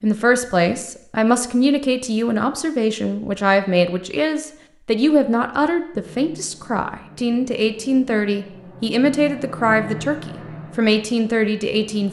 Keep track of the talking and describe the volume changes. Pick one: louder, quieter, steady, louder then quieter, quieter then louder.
steady.